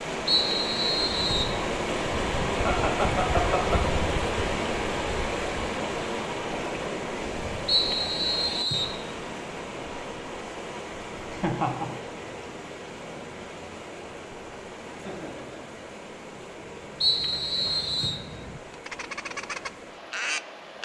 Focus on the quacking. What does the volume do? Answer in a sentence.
The loudness of the quacking goes up.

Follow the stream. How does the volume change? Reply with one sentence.
The loudness of the stream goes down.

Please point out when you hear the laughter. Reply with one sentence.
The laughter can be heard from 2.6 to 3.8 s, from 11.3 to 11.9 s and from 14.9 to 15.8 s.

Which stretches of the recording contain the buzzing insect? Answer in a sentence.
The buzzing insect can't be heard in this clip.